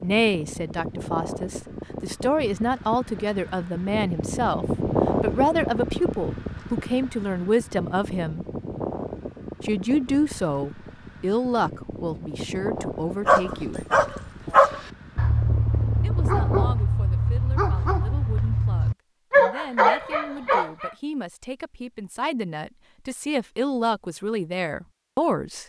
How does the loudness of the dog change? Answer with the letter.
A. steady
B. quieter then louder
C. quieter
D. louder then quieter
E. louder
B.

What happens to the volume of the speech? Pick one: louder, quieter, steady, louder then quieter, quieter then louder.
quieter then louder.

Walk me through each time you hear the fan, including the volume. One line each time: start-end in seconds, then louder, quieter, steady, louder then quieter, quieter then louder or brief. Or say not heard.
0.0-16.8 louder then quieter.